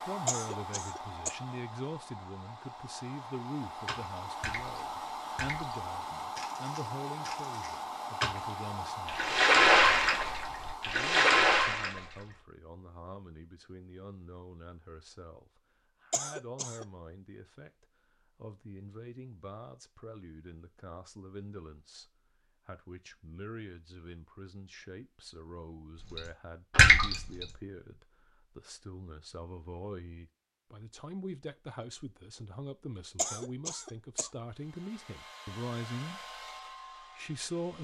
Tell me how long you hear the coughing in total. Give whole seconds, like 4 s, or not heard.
3 s.